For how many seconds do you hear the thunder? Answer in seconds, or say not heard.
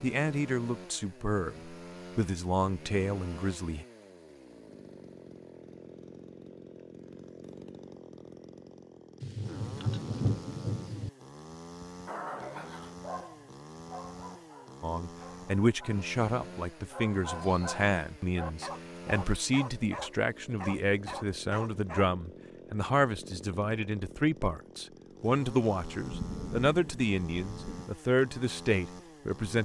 4 s.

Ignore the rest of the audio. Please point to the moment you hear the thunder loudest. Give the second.
10 s.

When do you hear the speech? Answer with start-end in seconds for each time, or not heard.
0.0-3.9, 14.8-29.6.